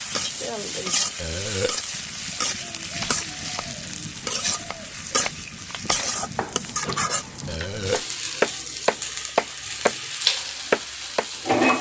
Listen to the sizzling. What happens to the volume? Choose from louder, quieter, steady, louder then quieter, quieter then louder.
steady.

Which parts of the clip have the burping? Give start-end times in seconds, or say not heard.
1.1-1.8, 7.5-8.1.